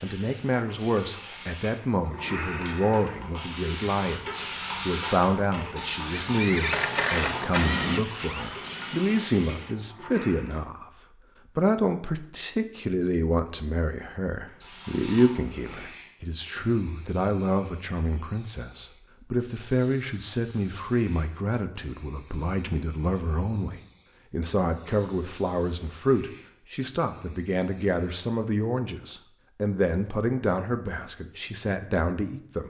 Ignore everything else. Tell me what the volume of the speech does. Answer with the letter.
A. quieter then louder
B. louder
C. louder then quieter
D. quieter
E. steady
E.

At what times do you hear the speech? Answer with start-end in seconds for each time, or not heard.
0.0-10.9, 11.6-32.6.